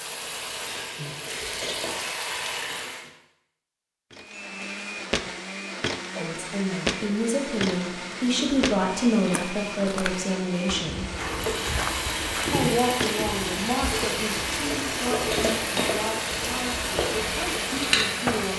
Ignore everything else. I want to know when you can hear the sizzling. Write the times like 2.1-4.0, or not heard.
0.0-3.1, 11.2-18.5.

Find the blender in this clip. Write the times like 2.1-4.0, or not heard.
4.1-18.5.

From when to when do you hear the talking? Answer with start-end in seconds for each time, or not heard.
6.2-11.1, 12.5-18.5.